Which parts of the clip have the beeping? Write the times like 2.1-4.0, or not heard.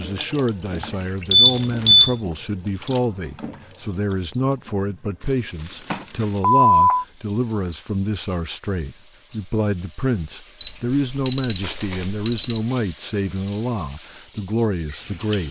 1.3-2.1, 5.9-7.0, 10.6-12.6.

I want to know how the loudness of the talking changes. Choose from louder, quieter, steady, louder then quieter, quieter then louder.
steady.